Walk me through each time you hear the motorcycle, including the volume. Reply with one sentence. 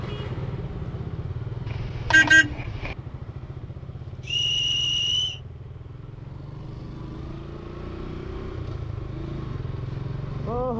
The motorcycle can be heard from 0.0 to 10.7 s, getting quieter then louder.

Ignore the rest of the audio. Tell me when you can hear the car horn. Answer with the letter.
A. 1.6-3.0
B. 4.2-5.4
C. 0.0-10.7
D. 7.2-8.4
A.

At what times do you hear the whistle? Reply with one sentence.
You can hear the whistle from 4.2 to 5.4 s.